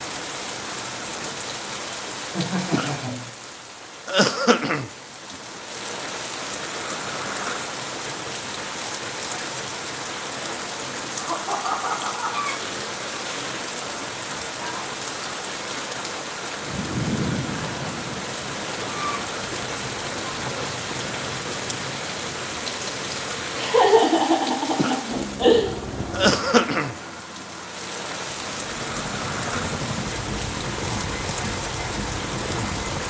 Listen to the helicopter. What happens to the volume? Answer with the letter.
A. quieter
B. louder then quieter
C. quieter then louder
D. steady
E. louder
C.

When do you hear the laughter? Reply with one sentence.
The laughter can be heard from 2.4 to 3.4 s, from 11.2 to 12.4 s and from 23.6 to 25.8 s.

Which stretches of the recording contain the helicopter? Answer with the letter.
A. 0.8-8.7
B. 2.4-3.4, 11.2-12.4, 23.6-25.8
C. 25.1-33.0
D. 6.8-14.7
C.